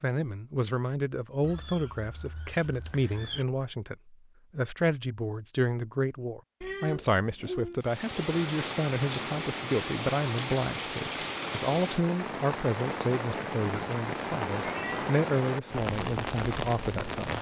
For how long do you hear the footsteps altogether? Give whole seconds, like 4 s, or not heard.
not heard.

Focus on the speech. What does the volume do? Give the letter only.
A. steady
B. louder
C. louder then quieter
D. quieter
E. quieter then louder
A.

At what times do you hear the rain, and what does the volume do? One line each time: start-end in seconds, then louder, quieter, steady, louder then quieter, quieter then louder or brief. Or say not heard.
7.8-17.3 steady.